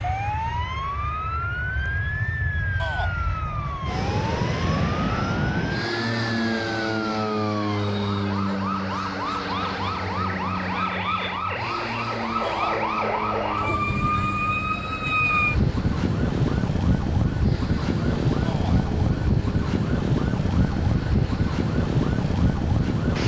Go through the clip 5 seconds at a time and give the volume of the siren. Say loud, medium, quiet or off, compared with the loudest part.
medium, medium, loud, loud, loud.